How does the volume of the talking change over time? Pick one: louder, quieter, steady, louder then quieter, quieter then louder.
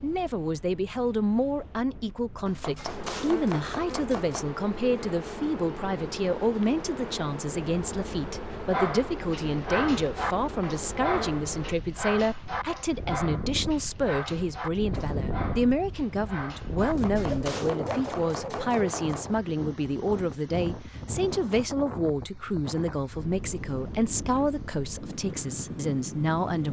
steady.